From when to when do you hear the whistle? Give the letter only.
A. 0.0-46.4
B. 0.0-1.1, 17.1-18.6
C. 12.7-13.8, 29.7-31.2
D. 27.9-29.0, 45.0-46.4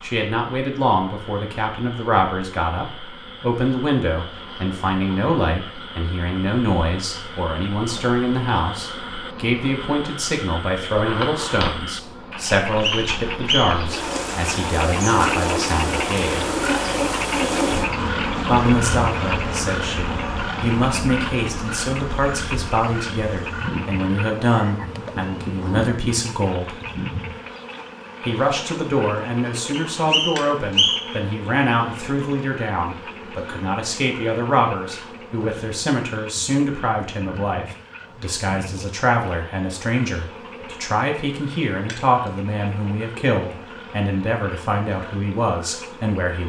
C.